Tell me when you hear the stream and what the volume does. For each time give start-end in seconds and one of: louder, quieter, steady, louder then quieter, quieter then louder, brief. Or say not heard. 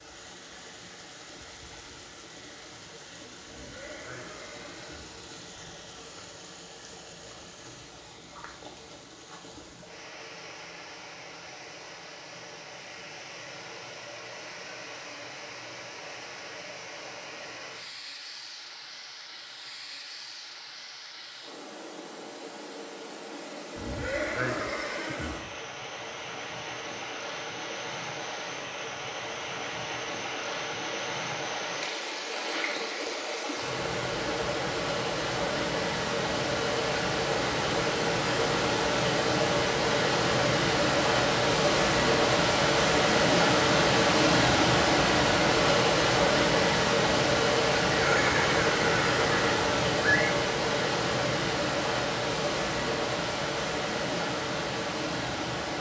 0.0-55.7 louder.